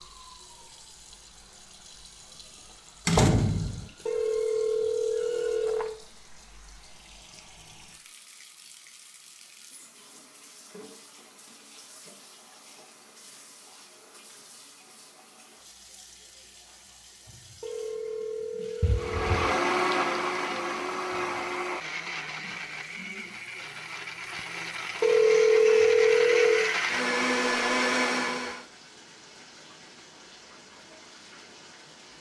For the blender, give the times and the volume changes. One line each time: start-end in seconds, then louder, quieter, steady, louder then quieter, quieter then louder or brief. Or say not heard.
18.9-28.6 quieter then louder.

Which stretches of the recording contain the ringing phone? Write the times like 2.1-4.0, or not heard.
4.0-6.0, 17.6-19.4, 25.0-26.7.